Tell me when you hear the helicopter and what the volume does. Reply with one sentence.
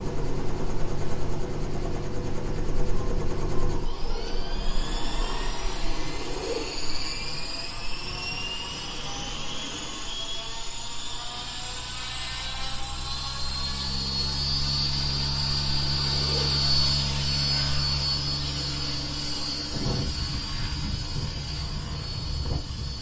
You can hear the helicopter from 0.0 to 22.9 s, getting louder then quieter.